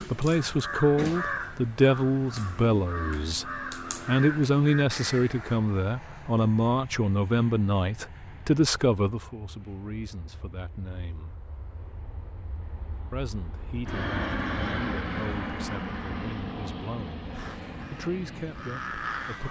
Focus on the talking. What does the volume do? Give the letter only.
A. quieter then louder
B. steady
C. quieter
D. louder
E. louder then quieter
C.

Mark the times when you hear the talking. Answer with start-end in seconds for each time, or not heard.
0.1-3.5, 4.0-11.3, 13.1-19.4.